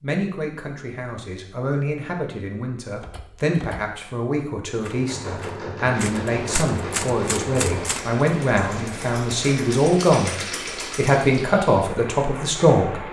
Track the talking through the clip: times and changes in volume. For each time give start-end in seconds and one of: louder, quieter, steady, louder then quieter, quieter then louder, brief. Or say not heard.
0.0-10.3 louder
10.9-13.0 brief.